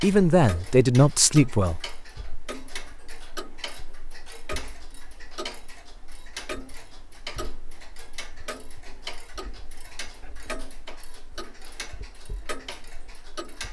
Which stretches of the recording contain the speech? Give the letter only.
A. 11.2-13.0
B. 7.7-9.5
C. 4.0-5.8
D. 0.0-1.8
D.